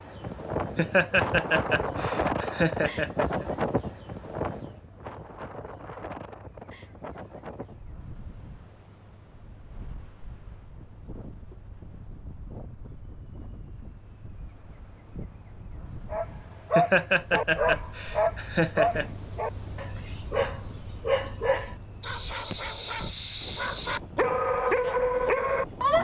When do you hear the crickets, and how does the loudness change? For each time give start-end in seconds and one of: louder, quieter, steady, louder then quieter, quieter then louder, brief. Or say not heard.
0.0-25.9 louder then quieter.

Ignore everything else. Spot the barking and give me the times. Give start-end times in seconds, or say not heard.
16.1-25.9.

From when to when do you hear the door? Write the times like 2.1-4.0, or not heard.
not heard.